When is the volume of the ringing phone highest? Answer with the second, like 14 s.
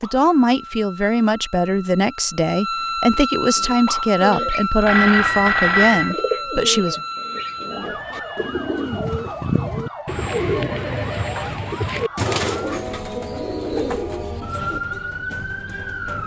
6 s.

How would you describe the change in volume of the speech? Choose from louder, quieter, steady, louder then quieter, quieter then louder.
steady.